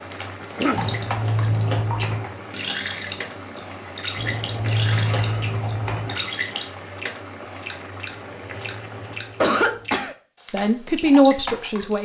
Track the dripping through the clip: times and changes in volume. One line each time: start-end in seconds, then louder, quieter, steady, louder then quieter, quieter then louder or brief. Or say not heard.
0.0-12.0 steady.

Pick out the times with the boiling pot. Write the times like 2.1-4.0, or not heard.
0.0-9.6.